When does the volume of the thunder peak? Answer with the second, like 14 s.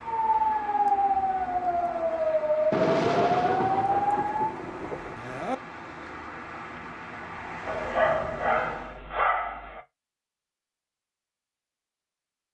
3 s.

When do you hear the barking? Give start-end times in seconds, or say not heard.
7.7-9.8.